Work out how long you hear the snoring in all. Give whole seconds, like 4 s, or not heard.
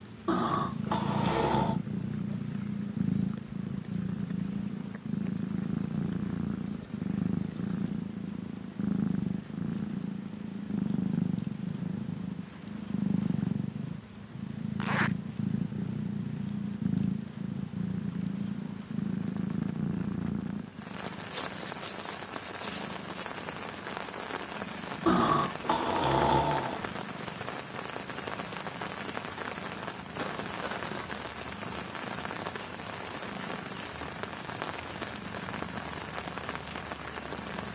3 s.